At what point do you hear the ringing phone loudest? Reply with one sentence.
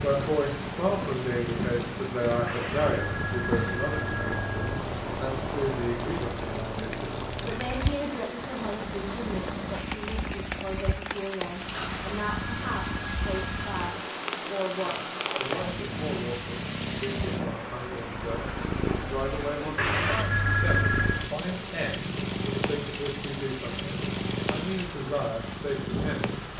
The loudest moment of the ringing phone is at 21 seconds.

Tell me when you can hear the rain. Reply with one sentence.
You can hear the rain from 0.0 to 26.5 s.